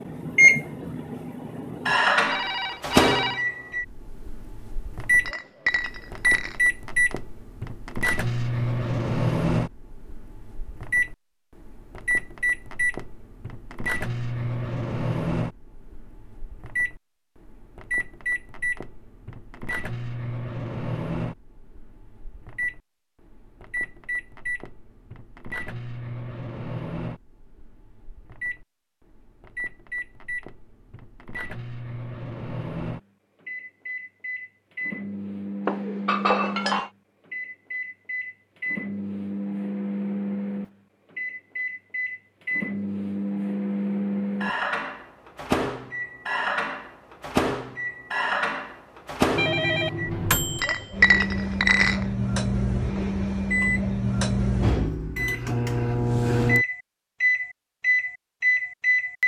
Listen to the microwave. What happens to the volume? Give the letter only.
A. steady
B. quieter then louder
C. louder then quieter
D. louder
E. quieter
B.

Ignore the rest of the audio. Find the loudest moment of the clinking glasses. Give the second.
51 s.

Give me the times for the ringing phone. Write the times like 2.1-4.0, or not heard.
2.2-3.5, 49.4-50.6.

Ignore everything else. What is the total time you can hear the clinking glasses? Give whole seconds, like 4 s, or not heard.
4 s.